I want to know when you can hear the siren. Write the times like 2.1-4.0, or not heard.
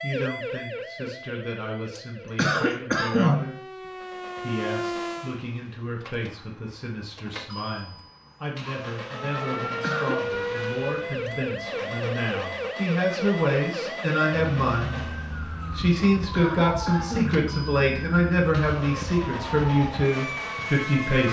0.0-5.4, 9.1-21.2.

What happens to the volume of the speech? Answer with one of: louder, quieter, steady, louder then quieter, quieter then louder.
louder.